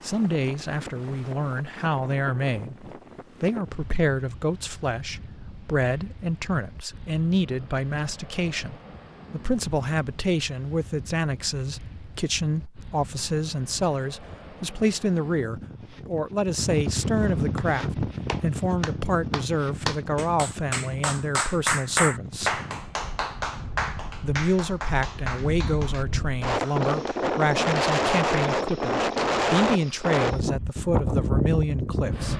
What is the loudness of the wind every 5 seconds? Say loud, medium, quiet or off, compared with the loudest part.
quiet, quiet, quiet, medium, quiet, loud, loud.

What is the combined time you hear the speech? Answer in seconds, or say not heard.
31 s.